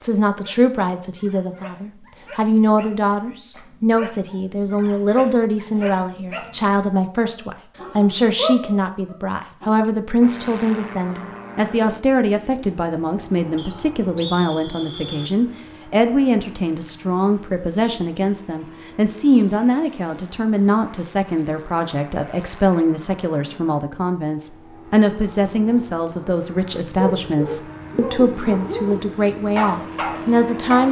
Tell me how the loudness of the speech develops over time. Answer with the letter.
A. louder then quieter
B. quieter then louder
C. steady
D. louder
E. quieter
C.